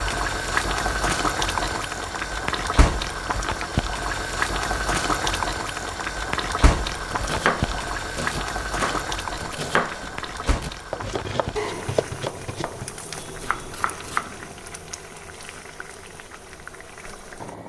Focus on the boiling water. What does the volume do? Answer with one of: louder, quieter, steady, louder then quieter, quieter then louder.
quieter.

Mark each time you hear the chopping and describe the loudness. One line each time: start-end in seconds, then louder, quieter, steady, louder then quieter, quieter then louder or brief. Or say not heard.
7.0-14.4 quieter.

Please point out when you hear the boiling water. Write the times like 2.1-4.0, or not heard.
0.0-17.6.